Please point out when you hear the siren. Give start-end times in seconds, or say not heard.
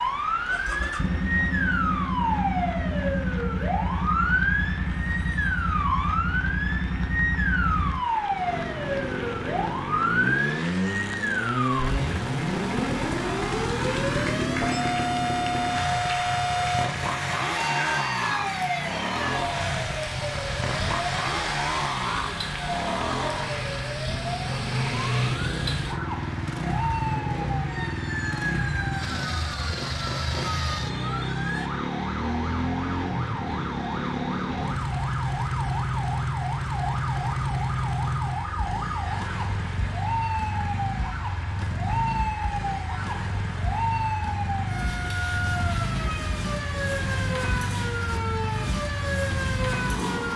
0.0-50.3.